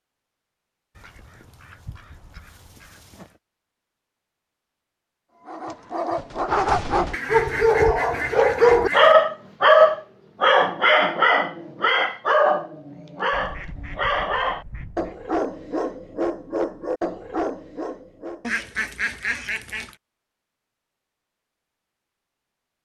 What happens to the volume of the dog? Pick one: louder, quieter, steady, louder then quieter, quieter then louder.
louder then quieter.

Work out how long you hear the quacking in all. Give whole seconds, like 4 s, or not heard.
8 s.